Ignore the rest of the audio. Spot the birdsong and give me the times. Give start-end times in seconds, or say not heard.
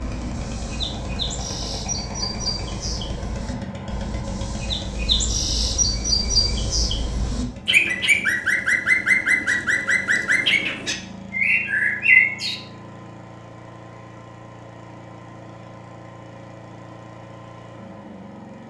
0.0-12.6.